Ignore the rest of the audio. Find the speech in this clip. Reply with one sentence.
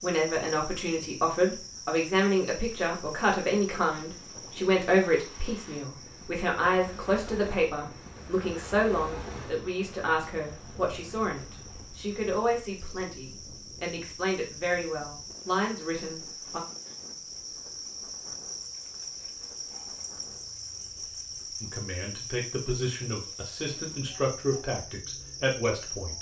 The speech can be heard from 0.0 to 16.6 s and from 21.6 to 26.1 s.